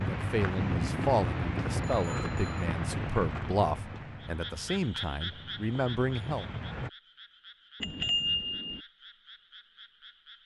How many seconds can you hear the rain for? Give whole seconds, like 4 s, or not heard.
7 s.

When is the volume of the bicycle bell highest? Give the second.
8 s.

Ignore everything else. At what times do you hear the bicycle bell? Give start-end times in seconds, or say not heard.
0.6-2.6, 7.8-8.8.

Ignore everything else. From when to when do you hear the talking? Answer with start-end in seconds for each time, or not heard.
0.0-6.5.